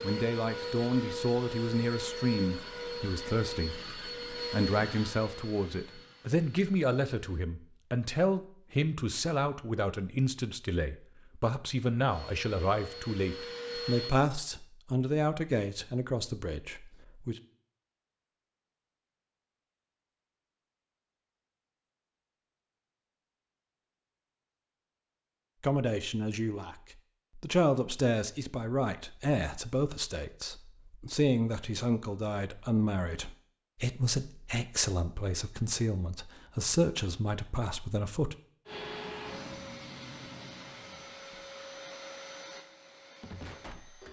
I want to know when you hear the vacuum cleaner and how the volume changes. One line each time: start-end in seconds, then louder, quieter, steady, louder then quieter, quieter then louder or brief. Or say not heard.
0.0-7.5 quieter
12.1-14.2 brief
38.6-44.0 quieter.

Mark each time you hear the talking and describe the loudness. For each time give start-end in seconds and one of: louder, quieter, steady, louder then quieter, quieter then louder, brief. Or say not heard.
0.0-17.4 steady
25.6-26.8 brief
27.4-38.4 steady.